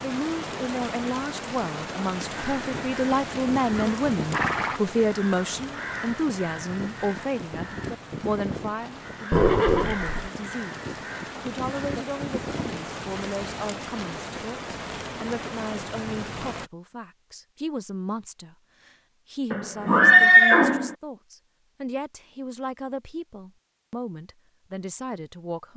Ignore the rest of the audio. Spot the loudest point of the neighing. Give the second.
20 s.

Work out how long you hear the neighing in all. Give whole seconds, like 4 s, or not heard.
3 s.